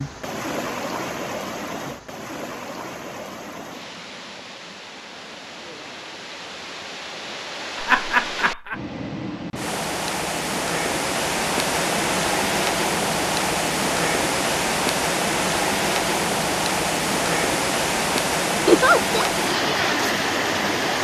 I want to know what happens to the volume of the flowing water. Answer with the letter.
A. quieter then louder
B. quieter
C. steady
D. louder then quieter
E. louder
E.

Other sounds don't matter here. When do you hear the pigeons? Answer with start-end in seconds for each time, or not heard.
not heard.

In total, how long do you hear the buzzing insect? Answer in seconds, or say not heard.
not heard.